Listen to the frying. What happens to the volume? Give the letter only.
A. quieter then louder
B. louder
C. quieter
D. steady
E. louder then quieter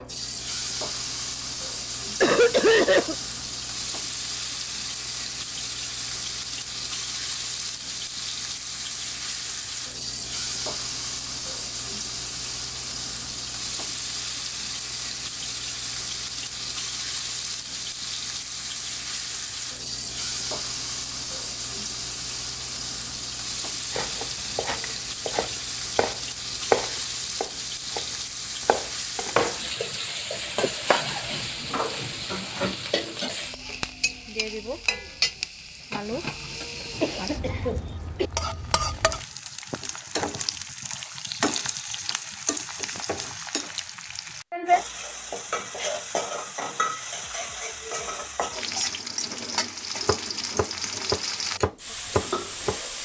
D.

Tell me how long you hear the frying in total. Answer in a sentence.
You can hear the frying for 53 seconds altogether.